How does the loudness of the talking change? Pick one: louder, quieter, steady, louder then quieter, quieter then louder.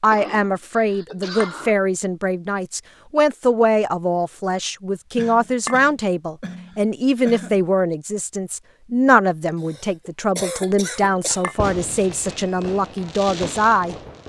steady.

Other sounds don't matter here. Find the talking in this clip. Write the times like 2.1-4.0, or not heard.
0.0-13.9.